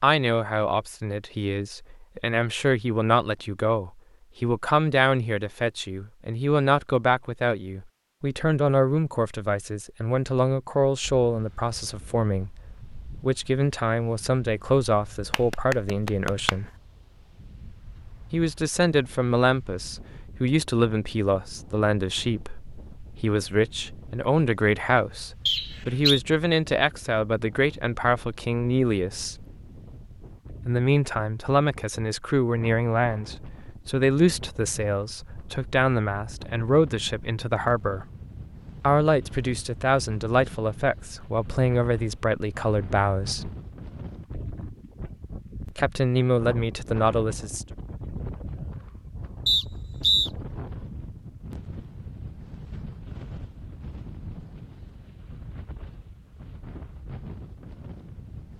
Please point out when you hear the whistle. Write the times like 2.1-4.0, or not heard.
25.4-26.2, 49.5-50.3.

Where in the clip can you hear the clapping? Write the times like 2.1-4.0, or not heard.
15.3-16.7.